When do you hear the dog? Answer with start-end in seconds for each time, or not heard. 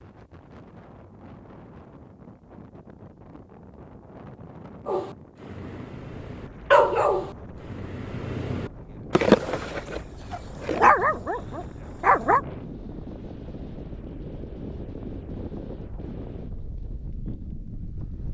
4.8-12.4.